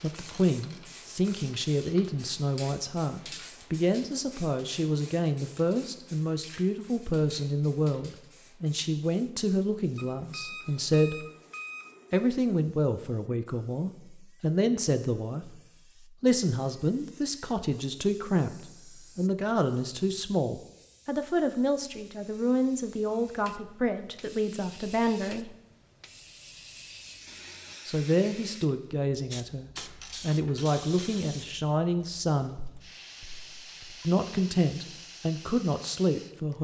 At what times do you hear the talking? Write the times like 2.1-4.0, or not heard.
0.0-11.2, 12.1-15.6, 16.2-25.5, 27.9-32.6, 34.0-36.5.